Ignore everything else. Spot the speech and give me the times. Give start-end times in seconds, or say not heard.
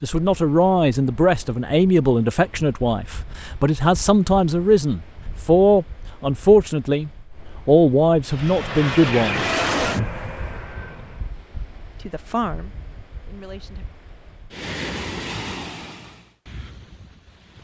0.0-9.7, 11.9-13.8.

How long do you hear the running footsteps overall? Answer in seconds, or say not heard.
not heard.